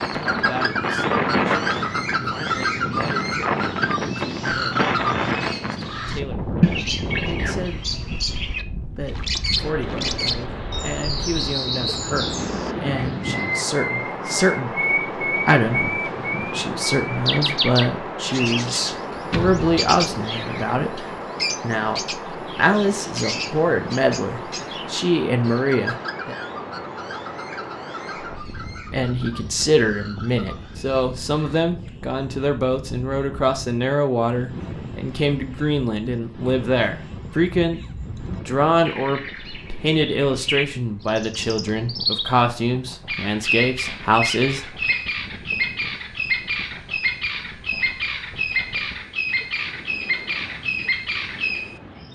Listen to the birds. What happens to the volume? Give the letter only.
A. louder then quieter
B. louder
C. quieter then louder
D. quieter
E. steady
C.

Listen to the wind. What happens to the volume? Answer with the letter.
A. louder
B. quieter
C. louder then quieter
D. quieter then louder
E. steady
B.